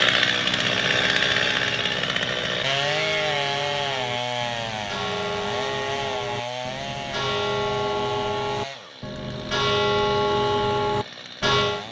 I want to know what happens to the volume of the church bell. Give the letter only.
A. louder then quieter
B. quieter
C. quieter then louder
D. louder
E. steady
D.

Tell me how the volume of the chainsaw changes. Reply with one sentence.
The volume of the chainsaw goes down.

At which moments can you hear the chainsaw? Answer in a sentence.
The chainsaw can be heard from 0.0 to 11.8 s.